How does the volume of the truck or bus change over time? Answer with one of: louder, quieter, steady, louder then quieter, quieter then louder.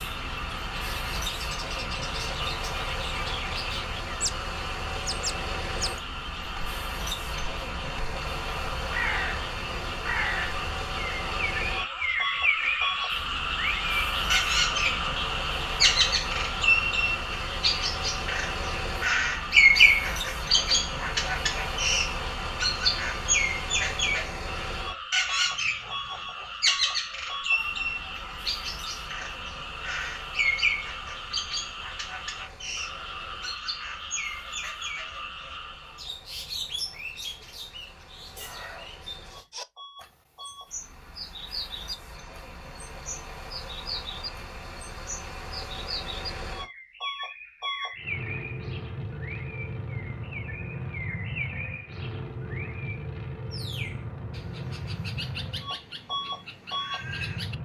quieter then louder.